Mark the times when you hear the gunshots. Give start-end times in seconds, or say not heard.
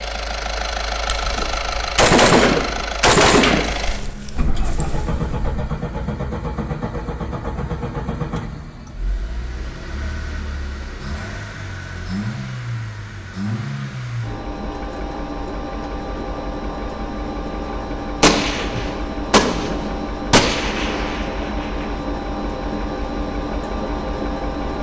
1.1-5.5, 18.2-21.9.